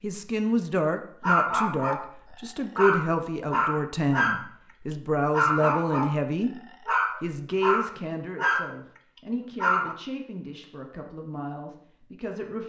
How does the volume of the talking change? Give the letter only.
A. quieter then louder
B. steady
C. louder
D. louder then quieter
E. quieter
E.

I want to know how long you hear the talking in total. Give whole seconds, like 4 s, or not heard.
12 s.